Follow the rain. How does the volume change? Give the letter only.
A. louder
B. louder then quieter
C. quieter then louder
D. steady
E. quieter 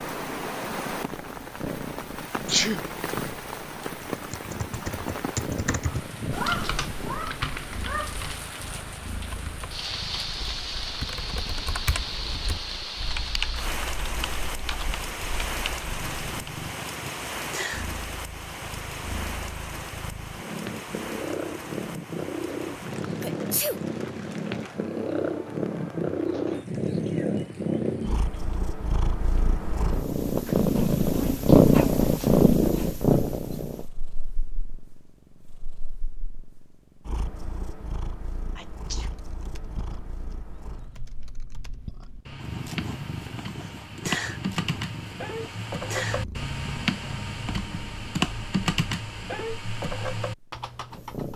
E.